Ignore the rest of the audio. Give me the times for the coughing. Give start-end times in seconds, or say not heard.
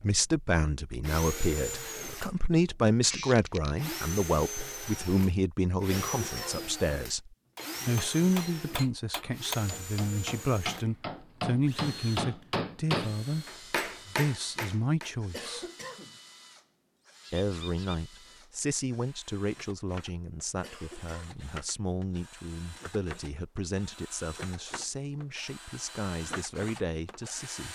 5.9-6.8, 15.3-16.2, 20.6-21.4.